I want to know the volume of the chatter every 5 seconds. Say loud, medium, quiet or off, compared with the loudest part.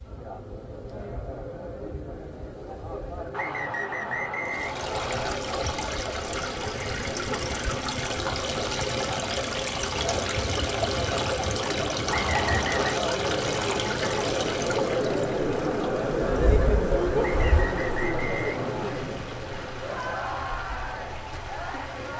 medium, medium, loud, loud, medium.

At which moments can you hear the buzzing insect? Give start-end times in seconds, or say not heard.
0.0-17.7.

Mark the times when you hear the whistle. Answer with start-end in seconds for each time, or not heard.
3.3-5.2, 12.1-12.9, 17.1-19.0.